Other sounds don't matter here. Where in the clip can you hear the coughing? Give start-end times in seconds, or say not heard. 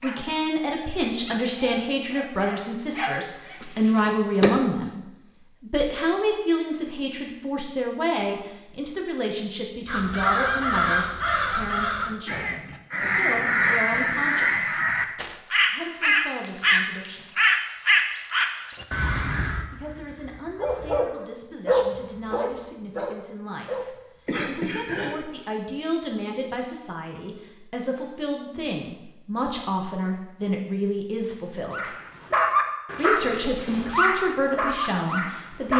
3.6-4.7, 24.2-25.1.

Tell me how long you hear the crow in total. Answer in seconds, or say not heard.
11 s.